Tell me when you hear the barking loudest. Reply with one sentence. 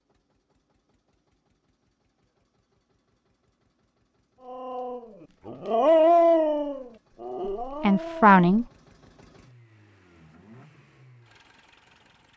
The volume of the barking peaks at 6 seconds.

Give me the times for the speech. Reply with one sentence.
You can hear the speech from 7.5 to 8.7 s.